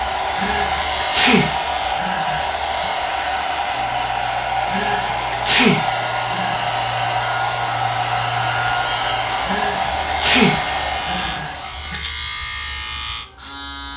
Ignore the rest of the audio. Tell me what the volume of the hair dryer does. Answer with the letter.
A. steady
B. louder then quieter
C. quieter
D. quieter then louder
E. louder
A.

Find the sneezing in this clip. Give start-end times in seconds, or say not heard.
0.3-2.9, 4.7-6.7, 9.4-12.1.